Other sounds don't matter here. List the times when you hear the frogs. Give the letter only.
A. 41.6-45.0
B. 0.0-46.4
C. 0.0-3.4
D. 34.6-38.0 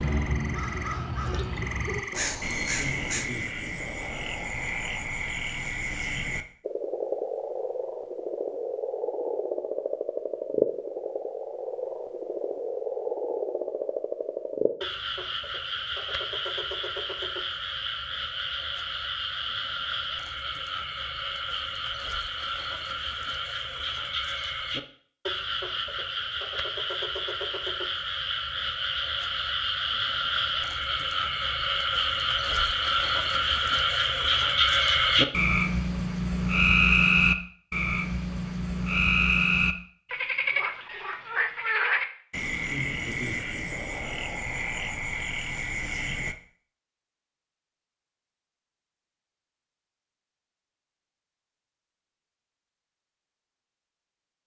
B.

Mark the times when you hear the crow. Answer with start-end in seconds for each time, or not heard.
0.0-3.4.